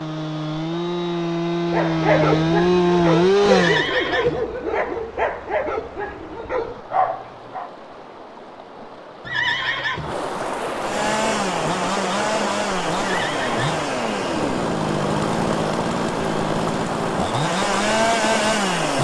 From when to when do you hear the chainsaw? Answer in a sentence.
You can hear the chainsaw from 0.0 to 3.9 s and from 10.8 to 18.9 s.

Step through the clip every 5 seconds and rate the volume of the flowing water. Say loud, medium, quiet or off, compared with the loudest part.
quiet, quiet, loud, loud.